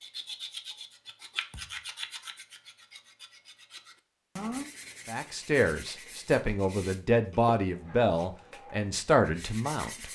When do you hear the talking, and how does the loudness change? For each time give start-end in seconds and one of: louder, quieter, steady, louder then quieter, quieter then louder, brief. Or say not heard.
5.0-10.1 steady.